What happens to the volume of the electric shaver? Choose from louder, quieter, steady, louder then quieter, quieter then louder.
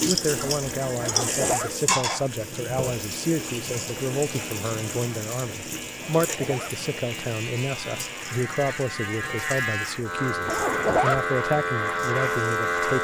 louder.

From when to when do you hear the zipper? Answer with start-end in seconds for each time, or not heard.
1.0-1.7, 6.2-6.8, 10.4-11.2.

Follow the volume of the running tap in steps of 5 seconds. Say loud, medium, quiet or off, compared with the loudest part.
loud, medium, quiet.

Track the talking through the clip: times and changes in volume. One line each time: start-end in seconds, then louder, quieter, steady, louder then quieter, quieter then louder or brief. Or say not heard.
0.1-12.9 steady.